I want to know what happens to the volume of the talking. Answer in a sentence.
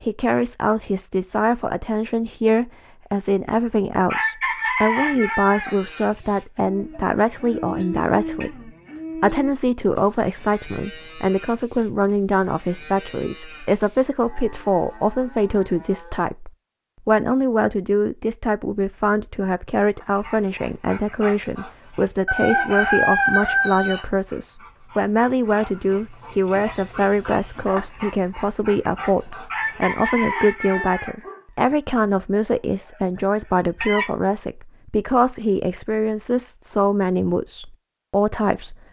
The loudness of the talking stays about the same.